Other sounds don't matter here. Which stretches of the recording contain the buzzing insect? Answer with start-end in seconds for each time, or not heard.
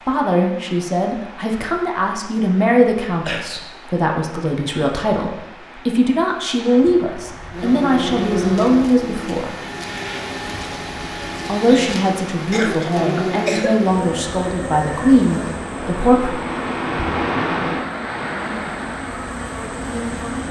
7.5-20.4.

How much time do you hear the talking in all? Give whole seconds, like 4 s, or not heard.
14 s.